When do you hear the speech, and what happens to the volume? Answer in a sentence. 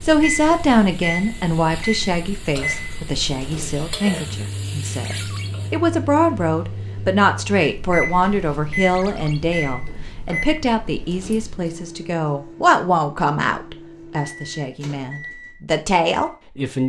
You can hear the speech from 0.0 to 16.8 s, at a steady volume.